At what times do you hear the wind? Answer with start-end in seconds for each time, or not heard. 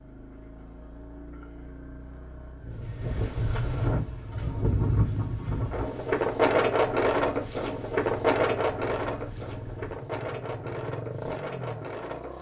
2.6-12.3.